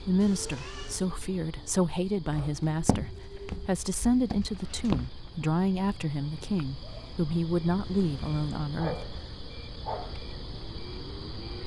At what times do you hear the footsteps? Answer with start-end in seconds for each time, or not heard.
2.3-5.1.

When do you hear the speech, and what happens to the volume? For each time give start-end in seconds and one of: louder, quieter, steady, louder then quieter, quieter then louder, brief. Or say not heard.
0.1-9.3 steady.